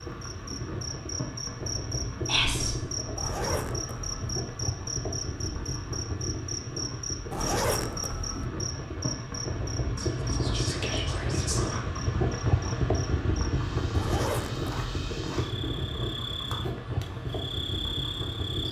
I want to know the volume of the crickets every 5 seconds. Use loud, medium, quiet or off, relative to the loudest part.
loud, loud, medium, loud.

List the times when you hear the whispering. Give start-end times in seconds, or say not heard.
2.2-2.8, 9.9-11.8.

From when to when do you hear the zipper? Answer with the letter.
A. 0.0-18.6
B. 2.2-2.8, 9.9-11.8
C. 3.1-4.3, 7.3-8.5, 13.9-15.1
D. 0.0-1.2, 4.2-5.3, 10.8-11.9
C.